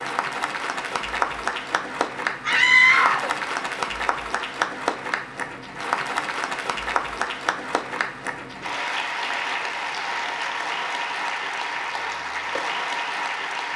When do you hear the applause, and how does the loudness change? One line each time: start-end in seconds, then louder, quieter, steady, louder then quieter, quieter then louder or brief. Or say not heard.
0.0-13.7 steady.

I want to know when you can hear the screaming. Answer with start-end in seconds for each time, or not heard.
2.5-3.4.